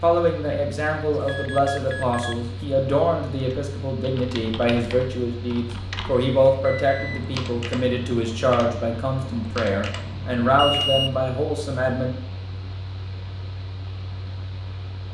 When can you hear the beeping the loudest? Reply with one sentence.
The volume of the beeping peaks at 11 seconds.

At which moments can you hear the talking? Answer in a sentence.
The talking can be heard from 0.0 to 12.1 s.